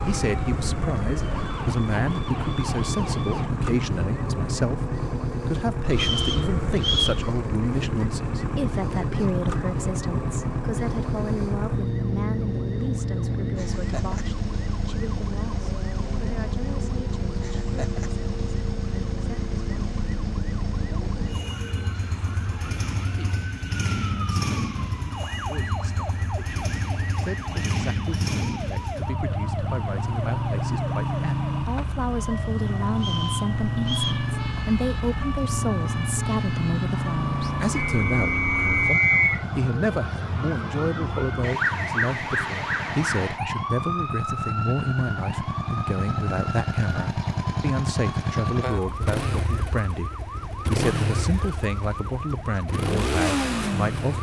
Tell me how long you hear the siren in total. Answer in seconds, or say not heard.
54 s.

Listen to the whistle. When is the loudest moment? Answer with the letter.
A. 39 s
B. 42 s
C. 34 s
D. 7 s
A.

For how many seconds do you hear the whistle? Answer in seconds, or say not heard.
4 s.